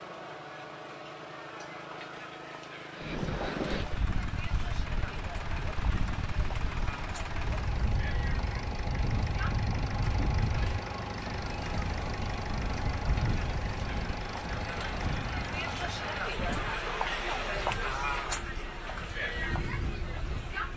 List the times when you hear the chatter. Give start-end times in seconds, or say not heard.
0.0-20.7.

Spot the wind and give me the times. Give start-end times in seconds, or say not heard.
3.0-20.7.